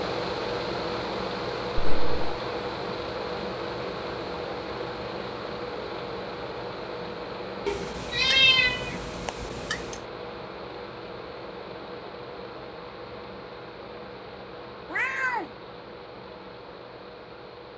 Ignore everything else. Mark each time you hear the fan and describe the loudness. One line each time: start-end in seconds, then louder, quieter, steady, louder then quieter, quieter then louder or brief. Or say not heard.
0.0-17.7 quieter.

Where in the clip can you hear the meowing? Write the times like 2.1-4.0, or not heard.
1.8-2.2, 7.7-9.9, 14.9-15.5.